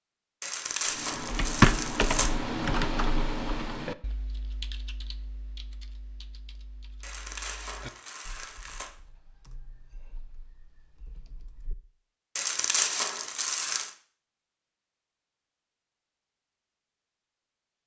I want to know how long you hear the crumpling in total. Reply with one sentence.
You can hear the crumpling for 5 seconds altogether.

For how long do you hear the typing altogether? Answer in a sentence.
The typing can be heard for 11 seconds in total.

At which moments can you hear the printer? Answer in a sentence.
You can't hear the printer here.